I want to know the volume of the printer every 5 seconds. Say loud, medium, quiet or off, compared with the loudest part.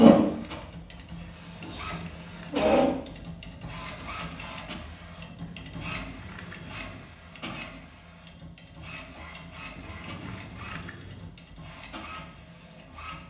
loud, quiet, quiet.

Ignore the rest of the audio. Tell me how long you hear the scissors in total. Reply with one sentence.
You can hear the scissors for 5 seconds altogether.